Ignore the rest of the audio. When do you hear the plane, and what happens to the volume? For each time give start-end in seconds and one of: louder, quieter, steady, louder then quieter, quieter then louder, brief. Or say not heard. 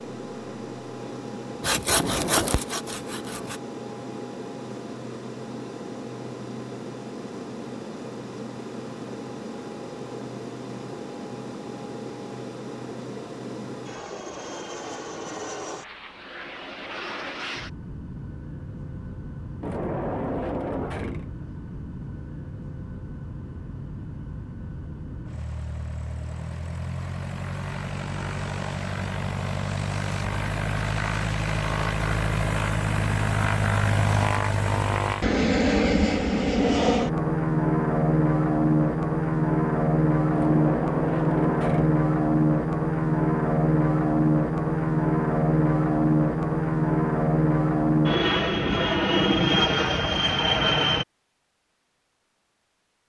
0.0-51.0 louder.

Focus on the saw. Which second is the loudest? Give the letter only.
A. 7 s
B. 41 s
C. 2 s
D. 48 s
C.